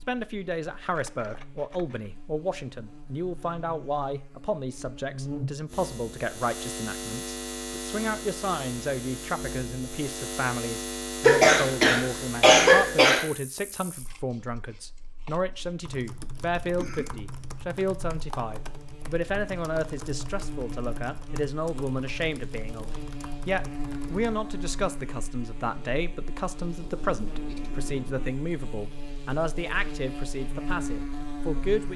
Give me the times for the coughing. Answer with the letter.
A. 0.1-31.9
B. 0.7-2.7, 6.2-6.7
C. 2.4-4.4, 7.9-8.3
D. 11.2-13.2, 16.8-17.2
D.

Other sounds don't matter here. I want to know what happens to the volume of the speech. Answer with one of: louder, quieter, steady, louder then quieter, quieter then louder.
steady.